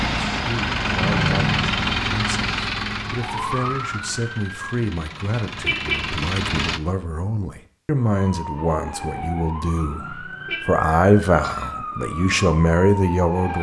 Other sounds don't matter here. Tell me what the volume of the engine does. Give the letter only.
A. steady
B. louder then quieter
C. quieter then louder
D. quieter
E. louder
C.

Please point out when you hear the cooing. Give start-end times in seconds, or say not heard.
not heard.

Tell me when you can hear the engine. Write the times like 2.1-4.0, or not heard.
0.0-6.8.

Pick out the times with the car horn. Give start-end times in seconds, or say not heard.
1.0-1.8, 5.0-6.1, 9.8-10.7.